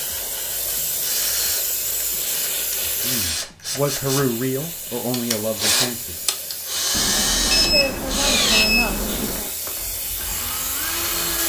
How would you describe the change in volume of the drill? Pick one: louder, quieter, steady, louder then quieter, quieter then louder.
louder then quieter.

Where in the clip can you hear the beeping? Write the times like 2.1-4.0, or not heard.
6.9-9.5.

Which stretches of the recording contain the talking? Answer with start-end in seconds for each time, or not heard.
3.0-6.2, 7.5-9.4.